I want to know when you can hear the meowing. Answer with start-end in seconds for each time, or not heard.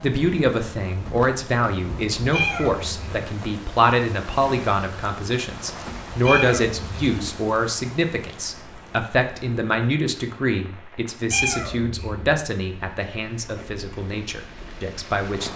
2.3-3.2, 6.2-7.1, 11.3-12.3.